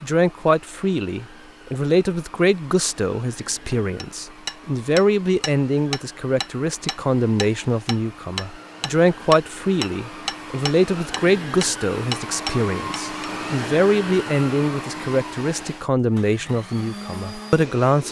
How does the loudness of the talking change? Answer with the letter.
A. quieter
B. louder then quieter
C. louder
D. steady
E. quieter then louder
D.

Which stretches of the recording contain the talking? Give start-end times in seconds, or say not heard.
0.0-18.0.